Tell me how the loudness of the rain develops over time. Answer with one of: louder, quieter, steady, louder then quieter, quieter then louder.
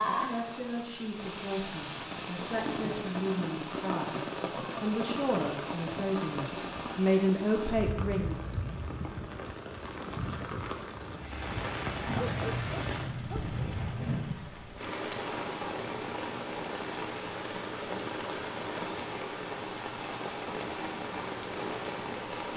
steady.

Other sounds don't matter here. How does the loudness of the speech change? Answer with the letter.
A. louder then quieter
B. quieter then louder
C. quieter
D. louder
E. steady
D.